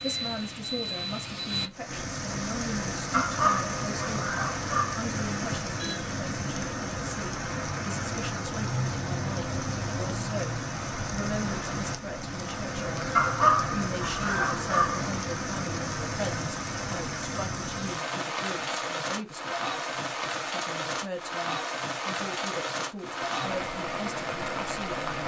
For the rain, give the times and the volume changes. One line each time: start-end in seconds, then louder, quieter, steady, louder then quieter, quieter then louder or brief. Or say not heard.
0.0-25.2 steady.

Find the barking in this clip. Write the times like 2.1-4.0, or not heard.
3.1-5.0, 13.2-15.1.